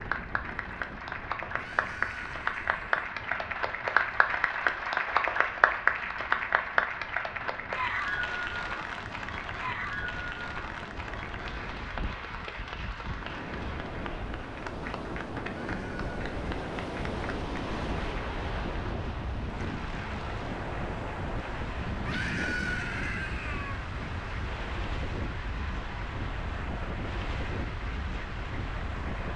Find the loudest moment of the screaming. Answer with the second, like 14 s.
23 s.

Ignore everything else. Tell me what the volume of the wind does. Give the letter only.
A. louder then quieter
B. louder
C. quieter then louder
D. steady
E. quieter
B.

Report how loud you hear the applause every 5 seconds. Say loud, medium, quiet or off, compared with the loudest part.
loud, loud, medium, quiet, quiet, quiet.